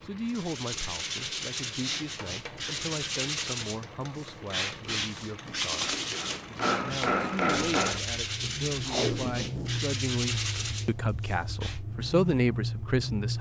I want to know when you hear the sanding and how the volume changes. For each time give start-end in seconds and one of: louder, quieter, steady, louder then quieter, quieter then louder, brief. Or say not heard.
0.2-11.8 steady.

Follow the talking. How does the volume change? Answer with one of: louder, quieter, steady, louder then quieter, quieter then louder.
louder.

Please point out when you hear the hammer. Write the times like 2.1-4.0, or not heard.
2.0-8.0.